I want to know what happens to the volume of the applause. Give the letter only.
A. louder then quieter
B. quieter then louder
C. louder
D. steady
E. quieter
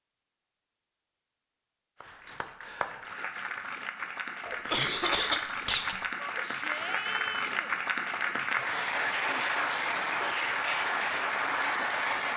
C.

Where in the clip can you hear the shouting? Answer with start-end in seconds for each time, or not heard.
6.2-7.7.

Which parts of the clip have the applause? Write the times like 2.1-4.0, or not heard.
2.0-12.3.